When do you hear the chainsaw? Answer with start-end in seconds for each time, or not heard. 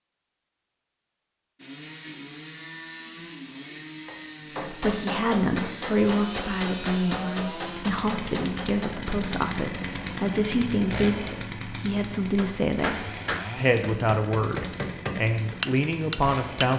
1.6-16.7.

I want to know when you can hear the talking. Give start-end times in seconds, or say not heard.
4.7-16.7.